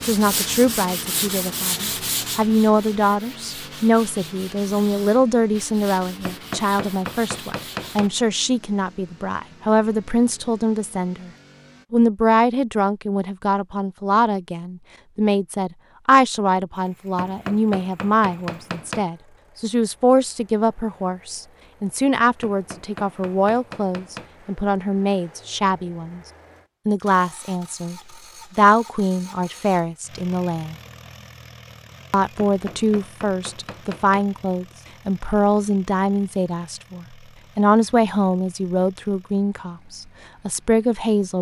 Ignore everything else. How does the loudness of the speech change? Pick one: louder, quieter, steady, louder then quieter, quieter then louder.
steady.